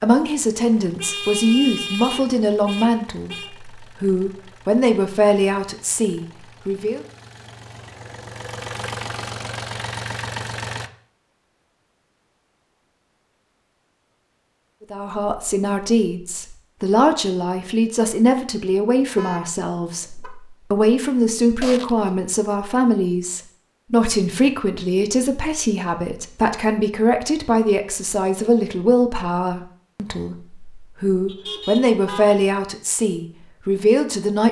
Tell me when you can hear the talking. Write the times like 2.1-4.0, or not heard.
0.0-7.0, 14.9-34.4.